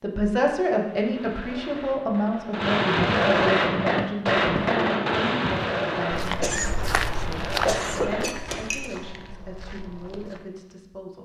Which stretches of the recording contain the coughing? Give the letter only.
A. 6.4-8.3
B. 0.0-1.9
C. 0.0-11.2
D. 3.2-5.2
A.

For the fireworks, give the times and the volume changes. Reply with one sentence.
The fireworks can be heard from 0.9 to 8.7 s, getting louder then quieter.